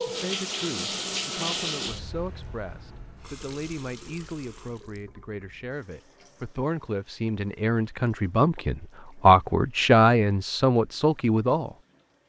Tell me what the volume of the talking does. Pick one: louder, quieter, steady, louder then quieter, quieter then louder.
louder.